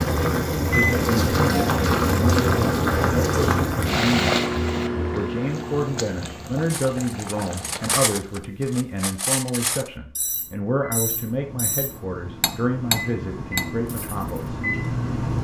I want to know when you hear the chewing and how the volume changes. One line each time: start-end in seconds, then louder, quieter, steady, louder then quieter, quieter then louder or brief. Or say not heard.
not heard.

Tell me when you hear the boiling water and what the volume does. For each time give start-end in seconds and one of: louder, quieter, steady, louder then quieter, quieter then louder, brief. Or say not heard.
0.0-8.4 quieter.